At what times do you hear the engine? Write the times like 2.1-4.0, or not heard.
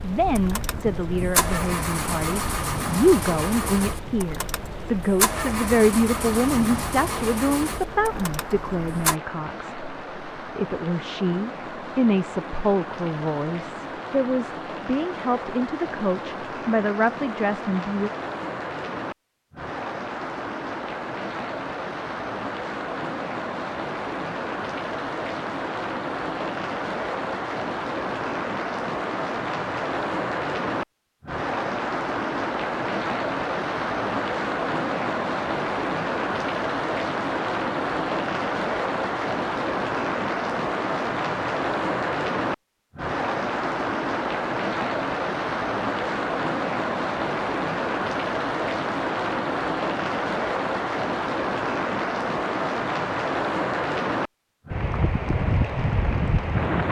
0.0-9.2.